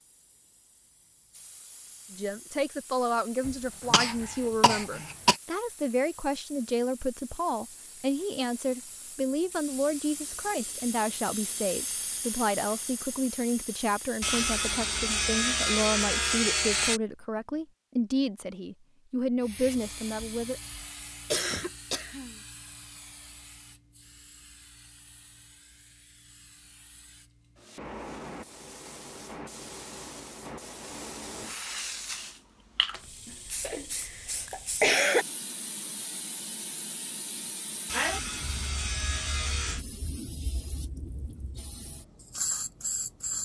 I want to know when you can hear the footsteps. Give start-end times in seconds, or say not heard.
not heard.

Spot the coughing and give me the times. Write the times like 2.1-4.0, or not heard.
3.5-5.3, 21.3-22.4, 33.2-35.2.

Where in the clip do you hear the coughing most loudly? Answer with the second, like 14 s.
35 s.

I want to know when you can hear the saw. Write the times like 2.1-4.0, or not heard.
14.2-17.0, 37.9-39.9.